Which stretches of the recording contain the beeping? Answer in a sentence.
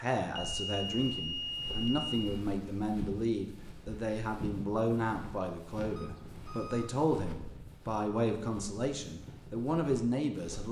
You can hear the beeping from 0.3 to 2.2 s and from 6.0 to 7.3 s.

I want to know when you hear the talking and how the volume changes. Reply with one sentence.
The talking can be heard from 0.0 to 10.6 s, at a steady volume.